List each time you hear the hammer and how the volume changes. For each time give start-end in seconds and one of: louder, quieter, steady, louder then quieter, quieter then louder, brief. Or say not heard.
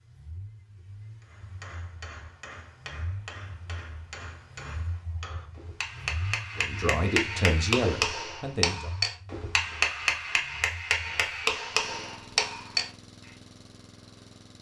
1.2-12.8 louder.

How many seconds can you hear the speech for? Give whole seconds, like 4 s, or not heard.
2 s.